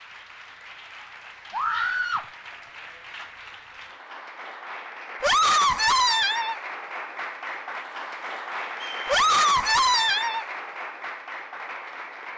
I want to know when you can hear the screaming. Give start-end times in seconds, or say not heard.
1.5-2.2, 5.2-6.5, 9.1-10.4.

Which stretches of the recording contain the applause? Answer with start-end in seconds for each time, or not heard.
0.0-12.3.